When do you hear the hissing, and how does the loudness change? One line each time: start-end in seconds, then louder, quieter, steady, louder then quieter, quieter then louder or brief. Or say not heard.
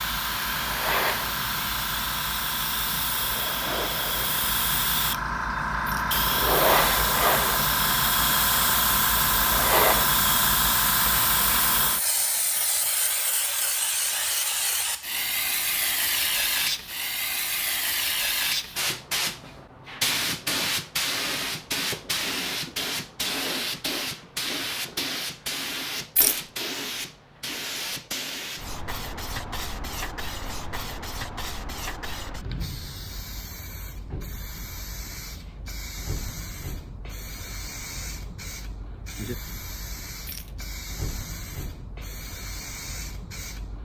0.0-43.7 quieter.